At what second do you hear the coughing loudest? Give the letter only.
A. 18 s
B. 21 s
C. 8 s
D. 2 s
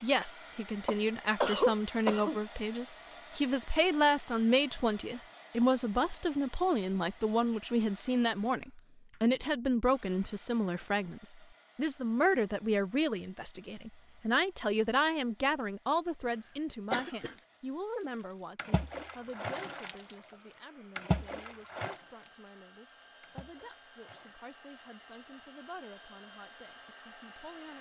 D.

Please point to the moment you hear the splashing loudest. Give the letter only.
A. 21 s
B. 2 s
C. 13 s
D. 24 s
A.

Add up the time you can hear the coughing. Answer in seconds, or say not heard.
2 s.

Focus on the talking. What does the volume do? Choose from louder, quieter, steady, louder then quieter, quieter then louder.
quieter.